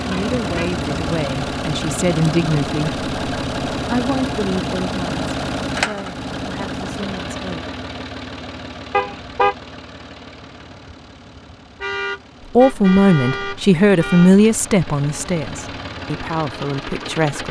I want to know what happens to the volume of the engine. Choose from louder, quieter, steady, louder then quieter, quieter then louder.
quieter then louder.